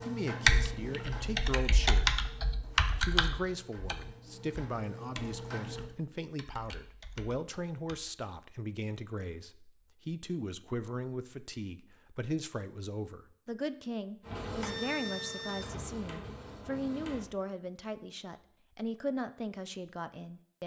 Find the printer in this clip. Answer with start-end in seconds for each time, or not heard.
0.0-5.9, 14.2-17.2.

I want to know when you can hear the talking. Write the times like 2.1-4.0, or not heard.
0.0-2.1, 3.0-20.6.